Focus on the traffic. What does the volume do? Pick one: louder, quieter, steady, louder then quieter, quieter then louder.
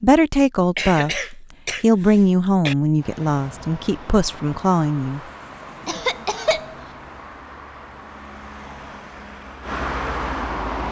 louder.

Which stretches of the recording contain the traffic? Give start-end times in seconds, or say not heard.
3.0-10.8.